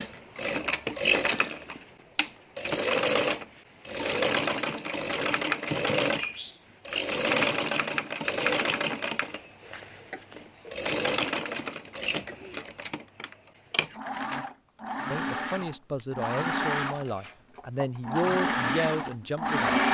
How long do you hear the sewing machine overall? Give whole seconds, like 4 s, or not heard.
20 s.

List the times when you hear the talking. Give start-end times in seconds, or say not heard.
15.1-19.8.